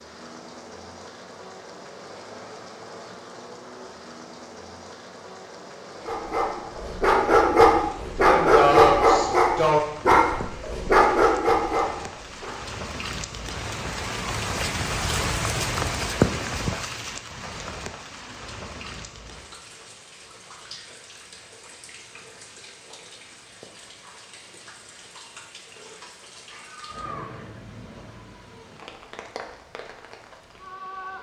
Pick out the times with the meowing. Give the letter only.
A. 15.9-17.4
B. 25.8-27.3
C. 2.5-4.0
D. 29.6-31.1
B.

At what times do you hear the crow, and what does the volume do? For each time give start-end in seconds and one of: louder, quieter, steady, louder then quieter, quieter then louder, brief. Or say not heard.
not heard.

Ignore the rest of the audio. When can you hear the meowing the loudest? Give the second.
27 s.